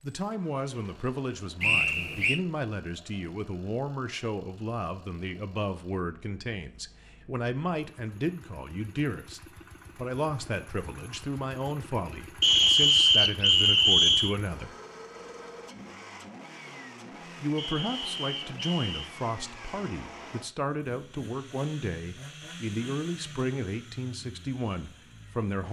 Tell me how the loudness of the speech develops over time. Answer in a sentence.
The loudness of the speech stays about the same.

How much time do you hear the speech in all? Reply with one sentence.
The speech can be heard for 23 seconds in total.